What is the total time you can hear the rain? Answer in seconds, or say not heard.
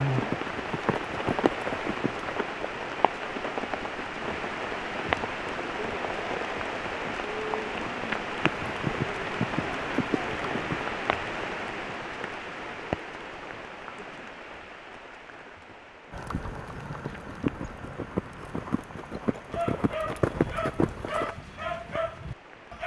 23 s.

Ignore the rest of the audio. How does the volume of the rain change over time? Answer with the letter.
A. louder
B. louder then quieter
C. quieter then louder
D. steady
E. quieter
E.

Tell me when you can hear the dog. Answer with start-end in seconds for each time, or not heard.
19.5-22.8.